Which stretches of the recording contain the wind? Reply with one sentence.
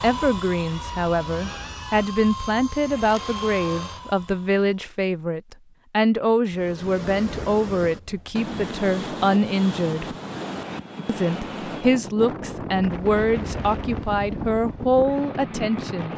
You can hear the wind from 6.5 to 16.1 s.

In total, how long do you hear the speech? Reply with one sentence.
The speech can be heard for 15 seconds in total.